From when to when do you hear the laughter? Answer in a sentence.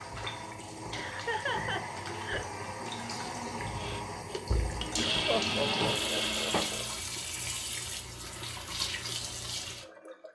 The laughter can be heard from 0.9 to 2.5 s and from 5.2 to 6.8 s.